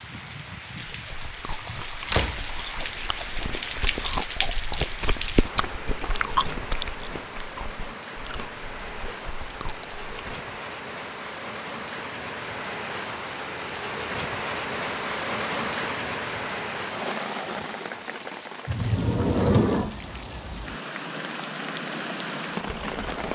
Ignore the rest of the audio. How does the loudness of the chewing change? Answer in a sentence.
The loudness of the chewing goes up, then down.